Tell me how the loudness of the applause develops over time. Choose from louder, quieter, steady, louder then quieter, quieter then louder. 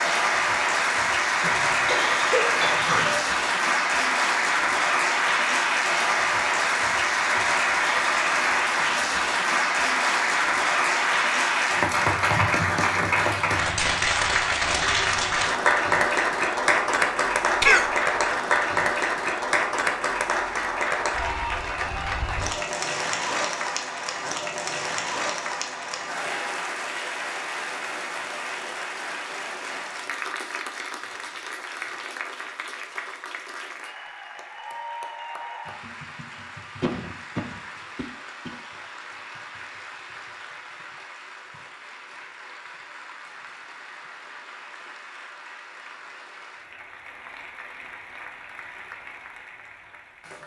quieter.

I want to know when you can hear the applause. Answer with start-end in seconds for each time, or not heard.
0.0-50.4.